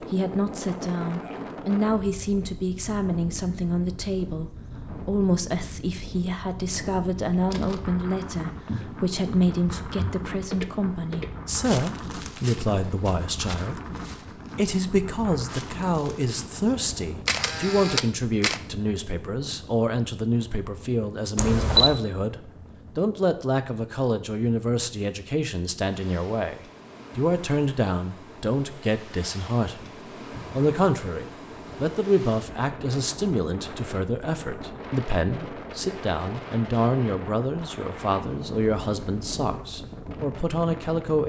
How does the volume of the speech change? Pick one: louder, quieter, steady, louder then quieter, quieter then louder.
steady.